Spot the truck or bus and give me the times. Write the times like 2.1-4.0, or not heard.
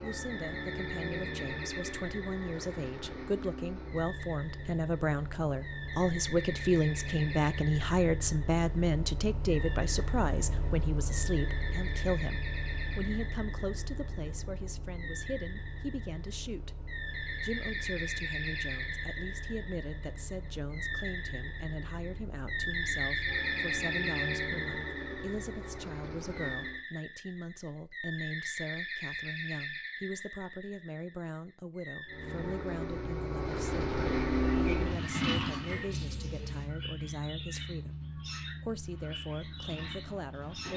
0.0-26.9, 32.0-40.7.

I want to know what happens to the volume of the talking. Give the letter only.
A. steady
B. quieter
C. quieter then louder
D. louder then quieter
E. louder
B.